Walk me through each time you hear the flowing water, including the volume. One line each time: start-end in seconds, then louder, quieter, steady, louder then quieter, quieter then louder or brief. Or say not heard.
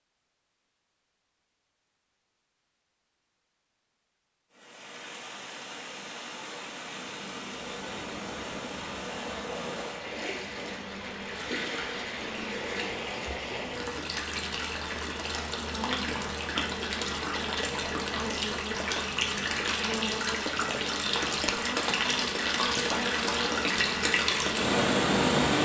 4.5-25.5 louder.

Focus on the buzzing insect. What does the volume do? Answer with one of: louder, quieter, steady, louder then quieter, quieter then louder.
louder.